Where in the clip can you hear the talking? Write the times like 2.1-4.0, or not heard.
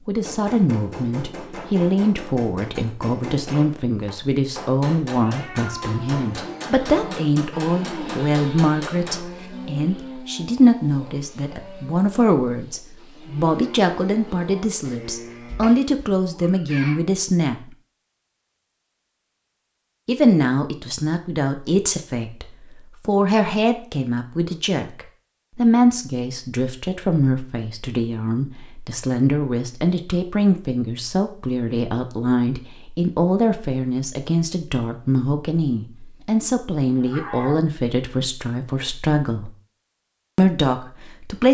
0.1-17.6, 20.1-39.5, 40.4-41.4.